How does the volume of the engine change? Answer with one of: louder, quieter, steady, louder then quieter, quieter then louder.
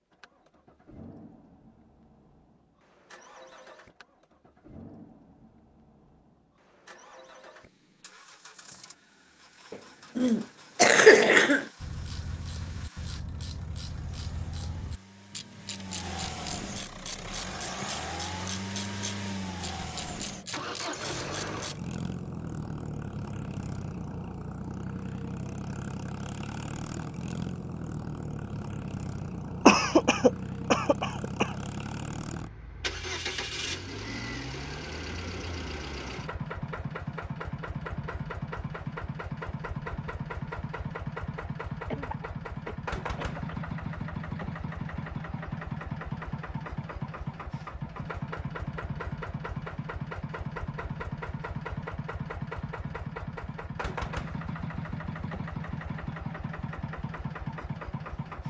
louder.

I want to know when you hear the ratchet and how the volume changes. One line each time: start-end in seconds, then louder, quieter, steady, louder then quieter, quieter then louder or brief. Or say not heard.
11.8-21.9 steady.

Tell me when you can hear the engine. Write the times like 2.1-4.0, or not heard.
0.0-58.4.